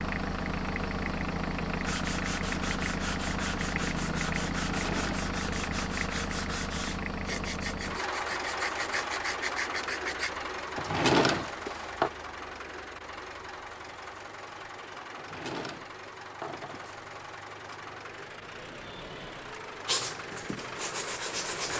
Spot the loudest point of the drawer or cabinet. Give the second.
11 s.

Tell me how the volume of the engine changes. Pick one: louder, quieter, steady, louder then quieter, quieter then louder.
quieter.